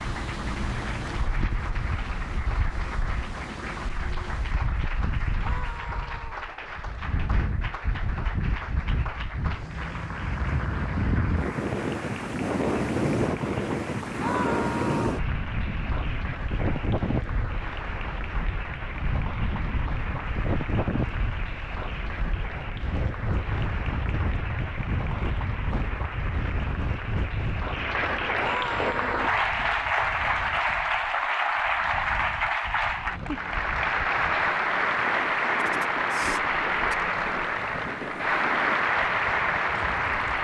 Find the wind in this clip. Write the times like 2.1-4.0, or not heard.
0.0-40.3.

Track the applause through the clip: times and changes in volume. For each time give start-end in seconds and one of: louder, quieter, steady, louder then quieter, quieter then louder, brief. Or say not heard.
0.0-40.3 louder.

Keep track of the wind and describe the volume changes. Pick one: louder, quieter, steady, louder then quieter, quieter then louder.
louder then quieter.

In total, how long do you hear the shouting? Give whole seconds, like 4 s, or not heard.
3 s.